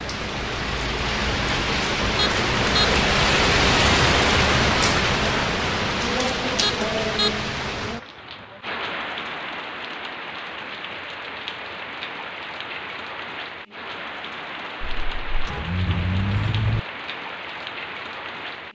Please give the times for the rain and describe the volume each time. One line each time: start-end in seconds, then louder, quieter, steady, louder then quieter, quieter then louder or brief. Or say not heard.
0.0-18.7 quieter.